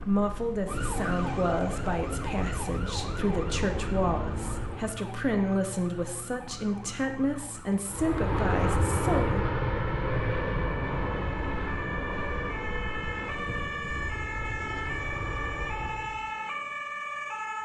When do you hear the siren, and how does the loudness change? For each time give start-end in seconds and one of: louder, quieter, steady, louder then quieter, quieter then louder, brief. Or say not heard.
0.0-17.6 quieter then louder.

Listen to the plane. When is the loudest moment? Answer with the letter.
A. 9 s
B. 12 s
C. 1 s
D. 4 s
A.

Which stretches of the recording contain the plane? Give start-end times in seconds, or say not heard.
0.0-5.0, 7.8-16.3.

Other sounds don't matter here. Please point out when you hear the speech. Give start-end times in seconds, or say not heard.
0.0-9.4.